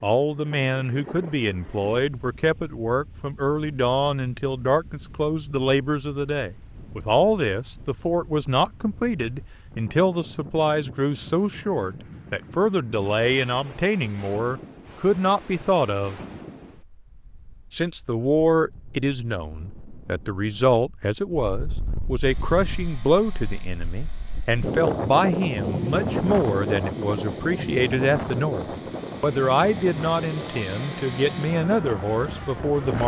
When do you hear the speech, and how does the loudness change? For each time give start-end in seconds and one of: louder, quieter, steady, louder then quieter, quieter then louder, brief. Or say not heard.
0.0-16.2 steady
17.7-33.0 steady.